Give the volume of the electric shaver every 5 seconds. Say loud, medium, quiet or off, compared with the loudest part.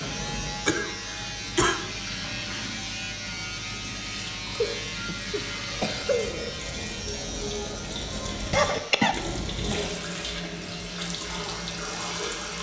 loud, loud, medium.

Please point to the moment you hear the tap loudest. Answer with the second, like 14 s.
10 s.